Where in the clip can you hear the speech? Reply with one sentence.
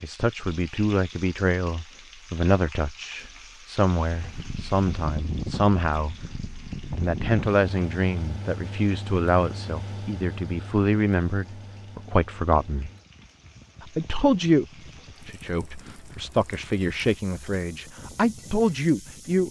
The speech can be heard from 0.0 to 6.2 s, from 7.0 to 12.9 s, from 13.8 to 14.7 s and from 15.2 to 19.4 s.